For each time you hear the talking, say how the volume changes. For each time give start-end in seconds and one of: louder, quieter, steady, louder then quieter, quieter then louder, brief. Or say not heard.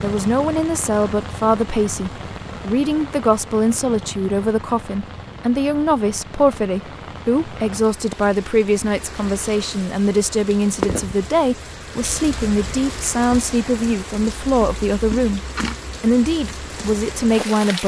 0.0-15.4 steady
16.0-17.8 brief.